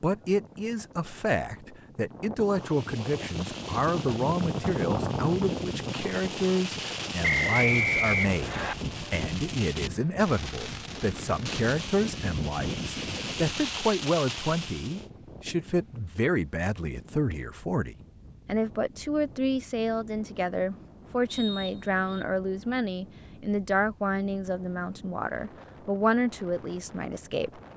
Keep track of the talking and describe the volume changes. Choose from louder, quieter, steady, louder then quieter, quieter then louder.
steady.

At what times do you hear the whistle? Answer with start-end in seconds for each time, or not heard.
7.2-8.8, 21.2-22.2.